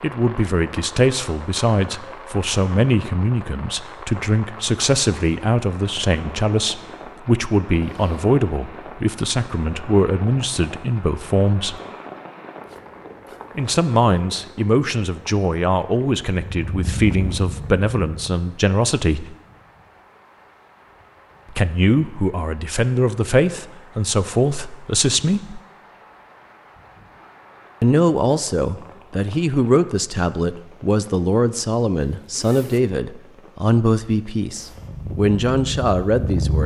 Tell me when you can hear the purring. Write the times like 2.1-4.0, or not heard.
16.3-18.4, 34.5-36.6.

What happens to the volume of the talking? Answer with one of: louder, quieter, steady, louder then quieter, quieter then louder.
steady.